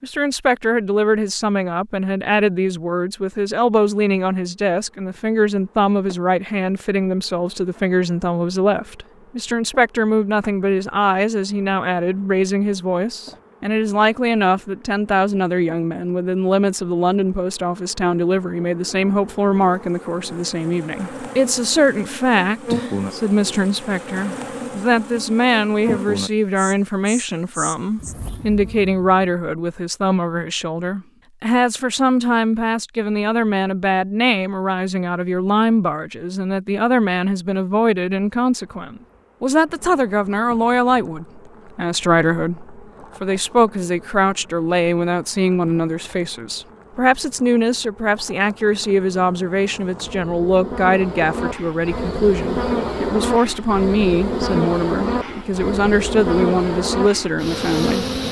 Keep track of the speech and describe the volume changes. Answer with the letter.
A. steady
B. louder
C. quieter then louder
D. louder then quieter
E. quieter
A.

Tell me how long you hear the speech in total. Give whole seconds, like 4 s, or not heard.
58 s.